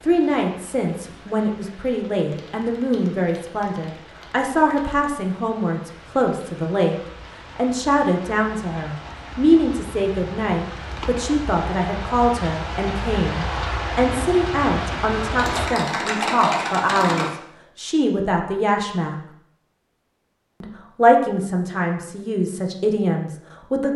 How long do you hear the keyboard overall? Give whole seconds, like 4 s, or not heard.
5 s.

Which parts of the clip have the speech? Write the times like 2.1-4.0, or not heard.
0.0-7.0, 7.5-19.2, 20.6-23.9.